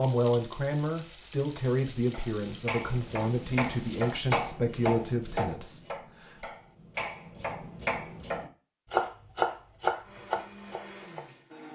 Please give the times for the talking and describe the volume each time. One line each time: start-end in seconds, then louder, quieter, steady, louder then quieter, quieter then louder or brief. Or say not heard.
0.0-6.5 steady.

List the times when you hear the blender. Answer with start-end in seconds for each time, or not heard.
10.0-11.7.